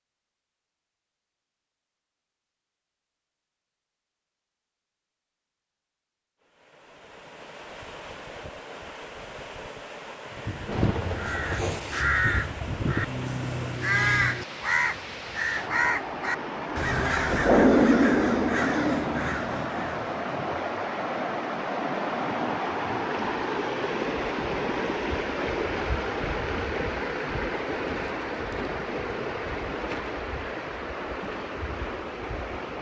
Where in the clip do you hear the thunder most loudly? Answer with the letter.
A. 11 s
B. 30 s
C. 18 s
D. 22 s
C.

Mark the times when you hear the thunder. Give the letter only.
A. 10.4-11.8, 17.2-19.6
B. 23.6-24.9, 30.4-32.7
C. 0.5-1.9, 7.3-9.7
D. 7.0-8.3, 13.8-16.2
A.